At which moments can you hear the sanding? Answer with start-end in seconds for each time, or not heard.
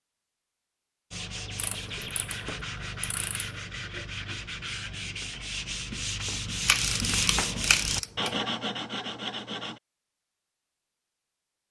1.1-9.8.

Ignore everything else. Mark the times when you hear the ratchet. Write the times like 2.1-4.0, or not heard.
1.6-3.5, 6.7-8.3.